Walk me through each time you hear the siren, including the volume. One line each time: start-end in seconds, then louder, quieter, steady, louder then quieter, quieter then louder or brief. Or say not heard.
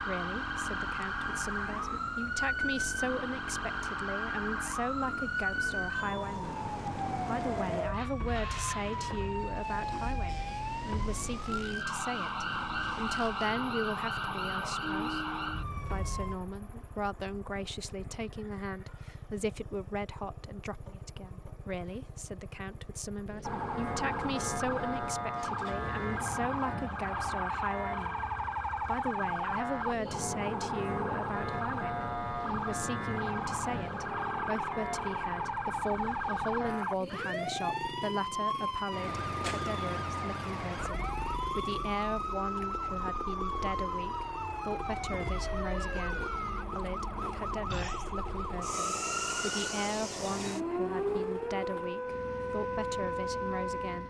0.0-16.4 steady
23.4-54.0 steady.